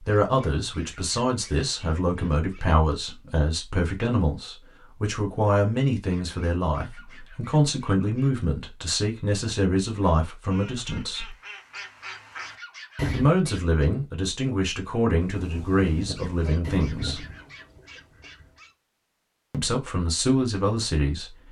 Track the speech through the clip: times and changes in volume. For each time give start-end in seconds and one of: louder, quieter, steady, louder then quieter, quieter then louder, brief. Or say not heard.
0.0-11.3 steady
13.1-17.2 steady
19.5-21.3 brief.